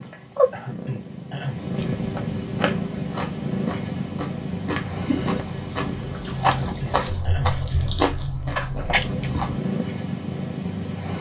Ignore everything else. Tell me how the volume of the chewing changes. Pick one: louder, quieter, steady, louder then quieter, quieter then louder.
louder.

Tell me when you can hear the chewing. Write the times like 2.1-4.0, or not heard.
1.8-9.6.